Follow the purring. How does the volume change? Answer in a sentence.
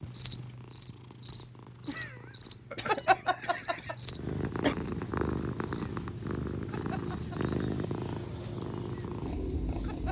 The loudness of the purring goes up.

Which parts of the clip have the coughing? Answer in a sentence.
The coughing can be heard from 2.8 to 4.8 s.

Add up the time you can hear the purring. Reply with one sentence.
You can hear the purring for 10 seconds altogether.